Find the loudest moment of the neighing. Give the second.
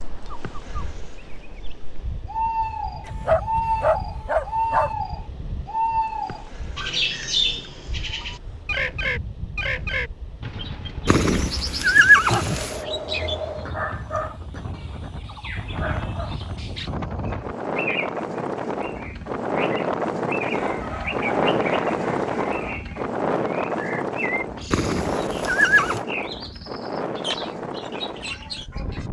12 s.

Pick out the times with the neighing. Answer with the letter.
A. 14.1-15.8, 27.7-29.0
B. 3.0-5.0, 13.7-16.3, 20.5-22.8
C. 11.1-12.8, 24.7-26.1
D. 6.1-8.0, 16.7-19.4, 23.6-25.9
C.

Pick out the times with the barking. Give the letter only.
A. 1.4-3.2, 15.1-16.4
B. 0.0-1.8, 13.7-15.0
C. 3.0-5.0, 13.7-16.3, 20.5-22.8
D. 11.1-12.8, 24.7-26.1
C.